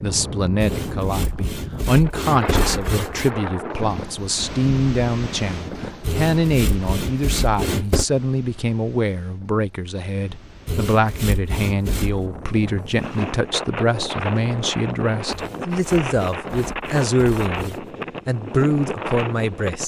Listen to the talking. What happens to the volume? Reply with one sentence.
The loudness of the talking stays about the same.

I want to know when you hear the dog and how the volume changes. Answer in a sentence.
The dog can't be heard in this clip.